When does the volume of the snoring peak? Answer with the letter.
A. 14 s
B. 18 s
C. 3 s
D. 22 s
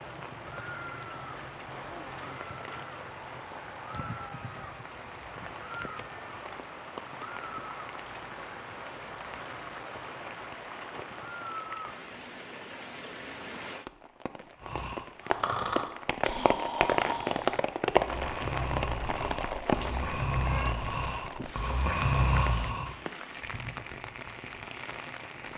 D.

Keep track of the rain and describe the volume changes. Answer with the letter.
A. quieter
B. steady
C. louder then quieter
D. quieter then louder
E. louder
C.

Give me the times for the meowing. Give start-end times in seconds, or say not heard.
19.7-20.8.